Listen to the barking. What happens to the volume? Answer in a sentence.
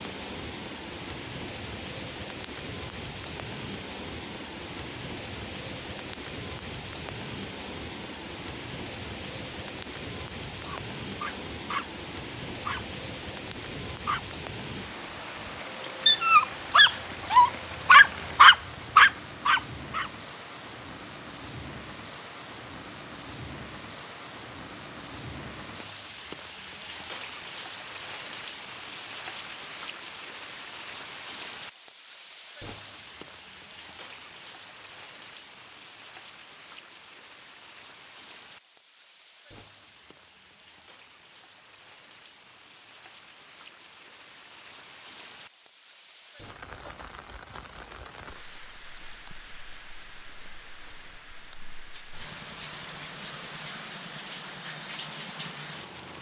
The loudness of the barking goes down, then up.